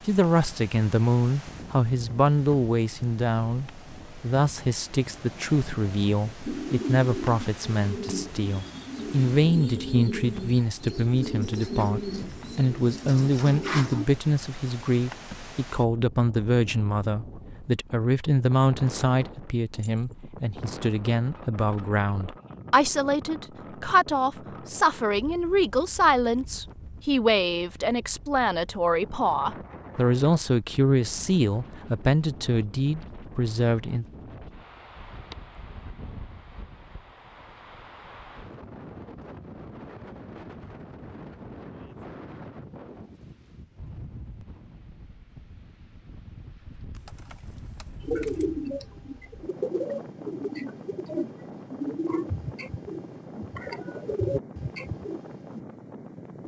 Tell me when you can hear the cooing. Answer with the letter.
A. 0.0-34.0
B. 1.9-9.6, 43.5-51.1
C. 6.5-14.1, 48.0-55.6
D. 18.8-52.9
C.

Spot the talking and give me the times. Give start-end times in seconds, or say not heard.
0.0-34.0.